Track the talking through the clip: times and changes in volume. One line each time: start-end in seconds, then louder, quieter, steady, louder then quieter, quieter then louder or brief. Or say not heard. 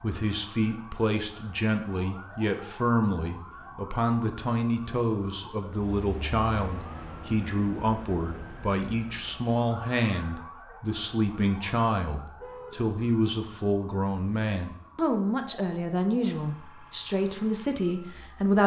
0.0-18.6 steady.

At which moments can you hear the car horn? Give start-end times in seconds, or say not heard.
12.3-12.8.